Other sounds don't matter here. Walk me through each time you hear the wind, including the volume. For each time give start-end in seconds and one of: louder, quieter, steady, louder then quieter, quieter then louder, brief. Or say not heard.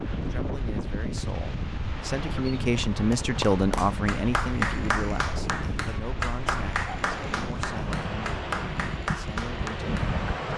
0.0-10.5 steady.